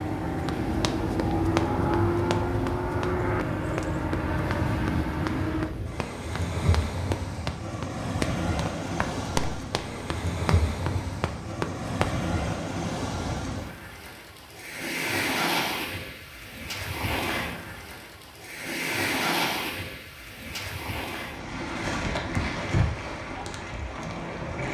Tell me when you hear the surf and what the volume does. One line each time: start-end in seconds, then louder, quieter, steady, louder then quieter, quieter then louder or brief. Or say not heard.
0.0-24.7 steady.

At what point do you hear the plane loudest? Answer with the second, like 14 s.
2 s.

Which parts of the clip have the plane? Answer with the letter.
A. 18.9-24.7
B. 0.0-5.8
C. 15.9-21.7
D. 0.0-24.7
B.